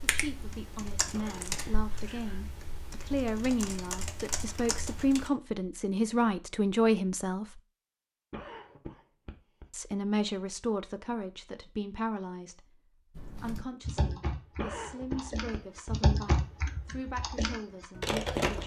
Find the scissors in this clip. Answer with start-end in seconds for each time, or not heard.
not heard.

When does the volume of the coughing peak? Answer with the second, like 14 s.
15 s.